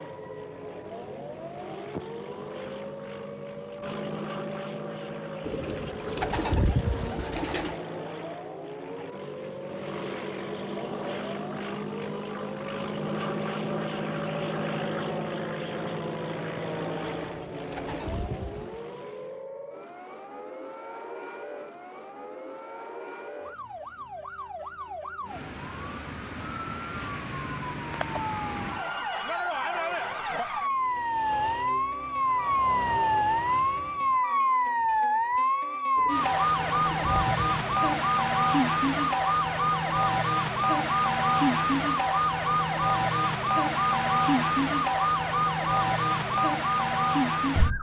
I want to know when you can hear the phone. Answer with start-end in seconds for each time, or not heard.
not heard.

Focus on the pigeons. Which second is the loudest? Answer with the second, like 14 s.
7 s.